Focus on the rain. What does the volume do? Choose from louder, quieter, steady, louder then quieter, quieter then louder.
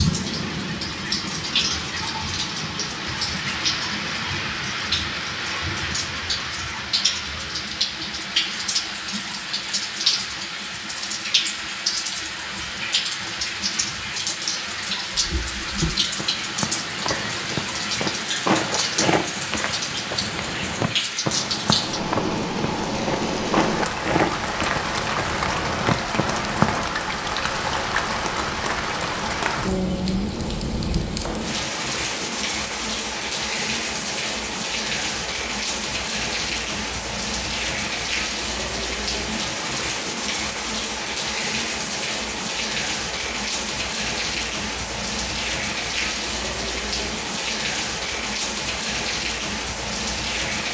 steady.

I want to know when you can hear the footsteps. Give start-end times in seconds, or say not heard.
15.2-26.9.